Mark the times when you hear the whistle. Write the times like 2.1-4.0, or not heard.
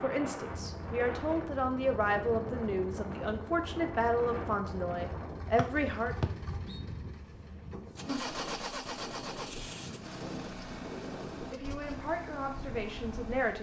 5.5-6.8.